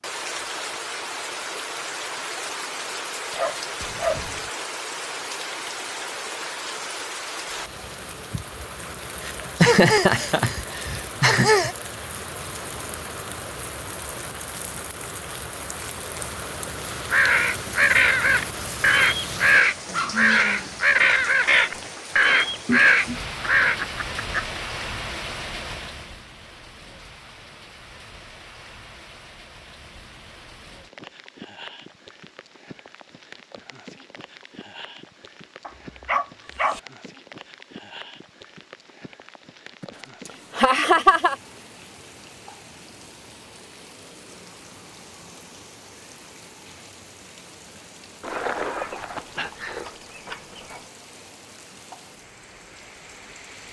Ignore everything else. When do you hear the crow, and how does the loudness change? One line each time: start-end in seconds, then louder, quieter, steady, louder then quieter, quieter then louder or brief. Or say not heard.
17.1-23.8 steady.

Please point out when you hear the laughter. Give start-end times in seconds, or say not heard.
9.2-11.8, 23.6-24.6, 39.8-41.4.